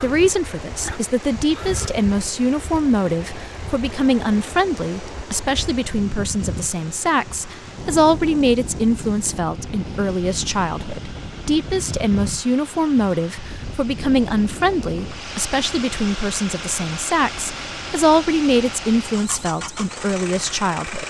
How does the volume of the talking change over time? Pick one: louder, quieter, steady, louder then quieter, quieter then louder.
steady.